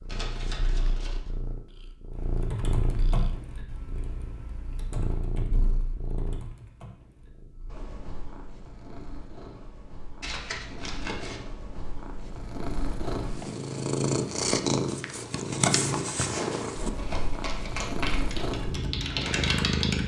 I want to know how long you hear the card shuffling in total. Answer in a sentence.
You can hear the card shuffling for 4 seconds altogether.